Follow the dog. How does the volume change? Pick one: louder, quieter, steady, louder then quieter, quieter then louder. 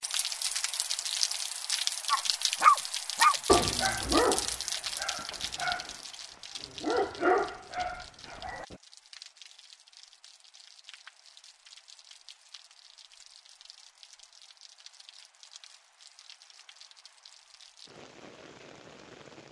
quieter then louder.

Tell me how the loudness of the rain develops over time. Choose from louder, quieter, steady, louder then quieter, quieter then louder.
quieter.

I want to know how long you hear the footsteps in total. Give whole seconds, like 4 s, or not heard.
not heard.